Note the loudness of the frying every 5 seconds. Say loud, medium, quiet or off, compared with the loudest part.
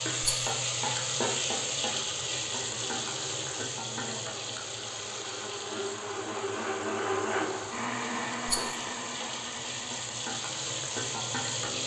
loud, medium, loud.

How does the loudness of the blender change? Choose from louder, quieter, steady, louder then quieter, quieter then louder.
louder then quieter.